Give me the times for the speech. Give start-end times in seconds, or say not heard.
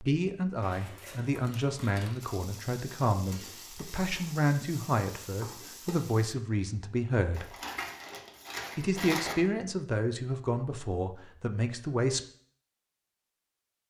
0.0-7.5, 8.8-12.2.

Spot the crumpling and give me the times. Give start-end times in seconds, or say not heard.
0.6-2.2, 7.3-9.3.